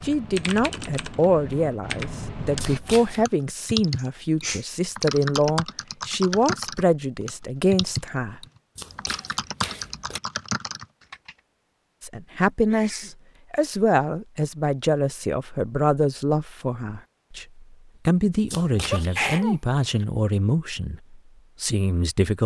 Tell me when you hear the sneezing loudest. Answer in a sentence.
The volume of the sneezing peaks at 19 seconds.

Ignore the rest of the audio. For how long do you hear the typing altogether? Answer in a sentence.
You can hear the typing for 11 seconds altogether.